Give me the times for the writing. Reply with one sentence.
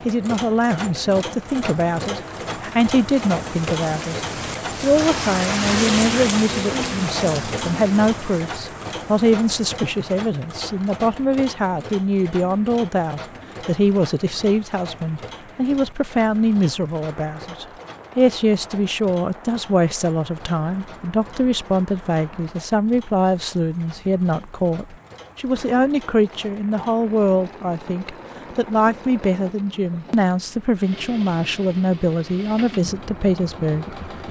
The writing can't be heard in this clip.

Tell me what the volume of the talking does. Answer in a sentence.
The volume of the talking stays about the same.